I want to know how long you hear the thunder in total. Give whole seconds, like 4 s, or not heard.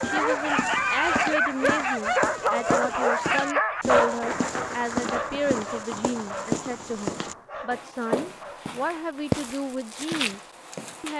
3 s.